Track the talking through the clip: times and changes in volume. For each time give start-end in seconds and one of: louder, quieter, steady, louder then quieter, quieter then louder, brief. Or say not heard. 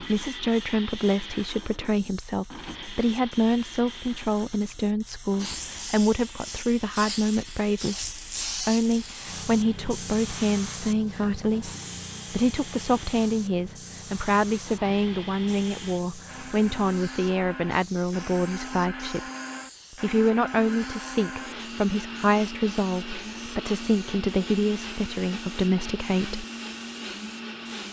0.0-11.7 steady
12.3-19.2 steady
19.9-26.4 steady.